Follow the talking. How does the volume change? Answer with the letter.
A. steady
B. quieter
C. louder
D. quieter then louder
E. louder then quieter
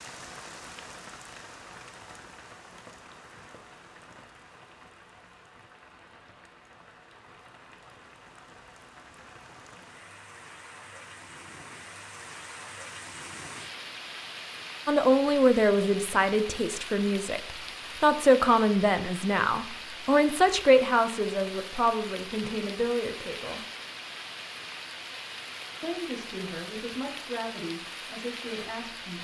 B.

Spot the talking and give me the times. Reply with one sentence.
The talking can be heard from 14.8 to 23.6 s and from 25.8 to 29.1 s.